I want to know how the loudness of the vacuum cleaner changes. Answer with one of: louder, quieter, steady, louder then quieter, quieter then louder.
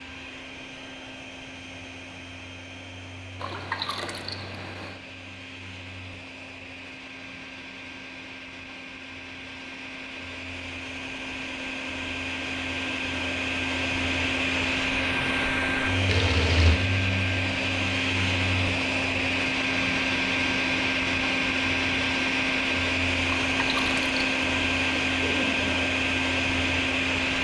louder.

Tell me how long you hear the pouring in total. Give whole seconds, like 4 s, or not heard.
4 s.